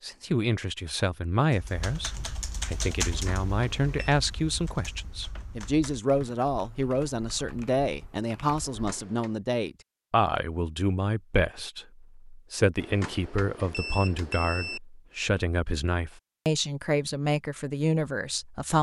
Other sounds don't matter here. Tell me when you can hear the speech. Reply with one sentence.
The speech can be heard from 0.0 to 18.7 s.